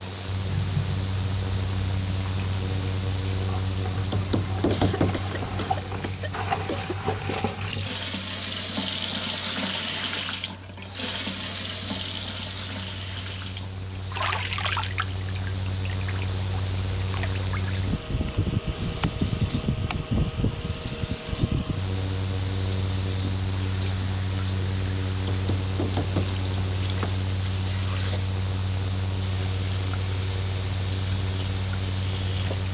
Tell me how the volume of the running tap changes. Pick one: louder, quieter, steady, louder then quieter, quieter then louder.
louder then quieter.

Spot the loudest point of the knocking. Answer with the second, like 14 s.
5 s.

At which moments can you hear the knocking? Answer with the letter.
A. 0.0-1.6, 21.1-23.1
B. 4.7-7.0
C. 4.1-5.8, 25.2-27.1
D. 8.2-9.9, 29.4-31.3
C.